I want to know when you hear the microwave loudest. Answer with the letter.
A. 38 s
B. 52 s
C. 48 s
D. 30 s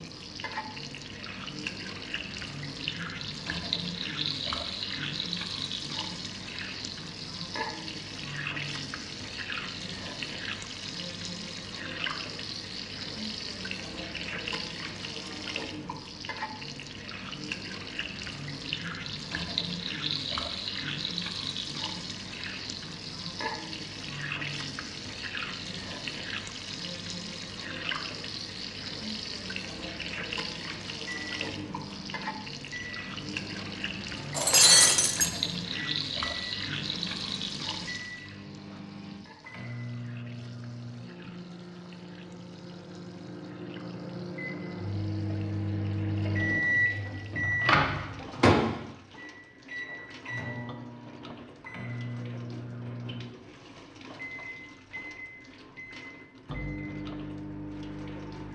C.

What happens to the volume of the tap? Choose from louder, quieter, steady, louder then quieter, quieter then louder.
quieter.